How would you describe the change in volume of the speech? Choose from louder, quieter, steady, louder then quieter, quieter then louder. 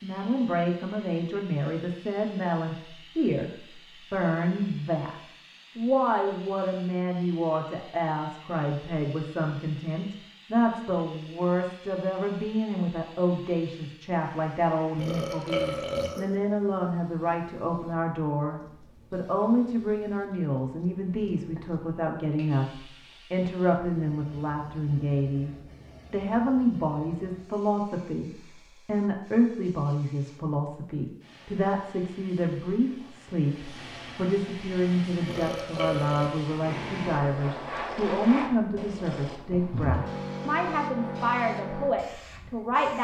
steady.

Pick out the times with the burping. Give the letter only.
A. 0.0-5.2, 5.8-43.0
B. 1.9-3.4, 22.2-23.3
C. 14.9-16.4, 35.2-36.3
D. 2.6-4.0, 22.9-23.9
C.